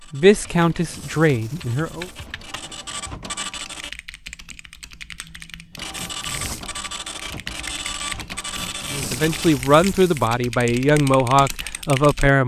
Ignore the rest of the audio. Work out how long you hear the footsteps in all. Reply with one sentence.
You can't hear the footsteps here.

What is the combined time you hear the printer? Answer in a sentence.
You can hear the printer for 8 seconds altogether.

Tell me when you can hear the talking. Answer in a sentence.
You can hear the talking from 0.1 to 2.1 s and from 8.9 to 12.4 s.